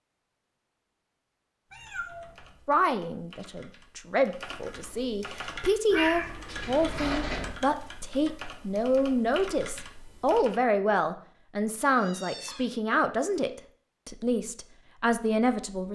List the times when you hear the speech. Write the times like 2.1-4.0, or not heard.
2.6-15.8.